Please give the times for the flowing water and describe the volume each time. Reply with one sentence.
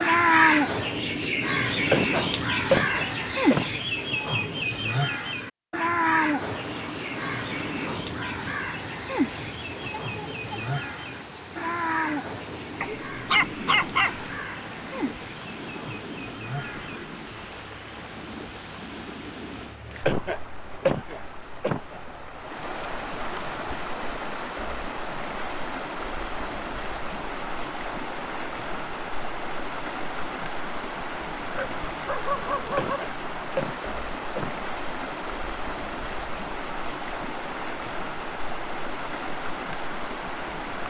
The flowing water can be heard from 6.3 to 40.8 s, getting louder.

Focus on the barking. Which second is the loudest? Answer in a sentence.
The loudest moment of the barking is at 14 seconds.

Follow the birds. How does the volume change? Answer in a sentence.
The volume of the birds goes down.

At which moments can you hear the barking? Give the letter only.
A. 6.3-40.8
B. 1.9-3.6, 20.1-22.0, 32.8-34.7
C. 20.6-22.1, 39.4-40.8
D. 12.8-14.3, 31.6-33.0
D.